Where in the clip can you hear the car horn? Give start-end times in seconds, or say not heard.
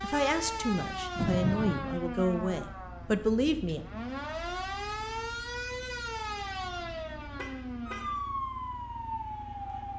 1.1-1.8, 6.3-8.2.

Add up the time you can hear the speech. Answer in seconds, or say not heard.
4 s.